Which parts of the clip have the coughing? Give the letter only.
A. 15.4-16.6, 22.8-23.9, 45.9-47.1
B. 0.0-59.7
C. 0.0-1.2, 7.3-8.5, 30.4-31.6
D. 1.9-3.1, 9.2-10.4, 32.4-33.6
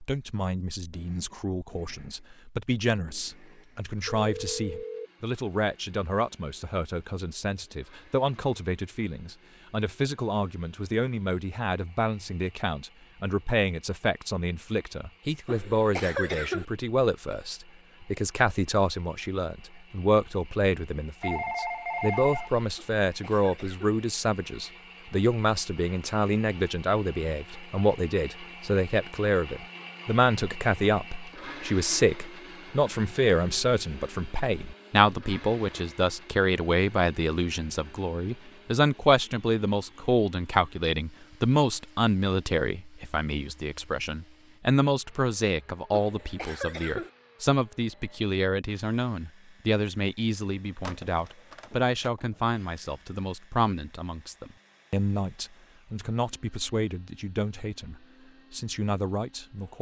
A.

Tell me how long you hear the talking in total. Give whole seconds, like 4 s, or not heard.
60 s.